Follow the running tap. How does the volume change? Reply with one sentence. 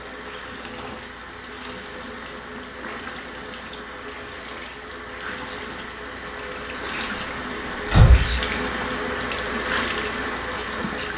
The loudness of the running tap goes up.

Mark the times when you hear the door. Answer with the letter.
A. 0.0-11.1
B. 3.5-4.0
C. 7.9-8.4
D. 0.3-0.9
C.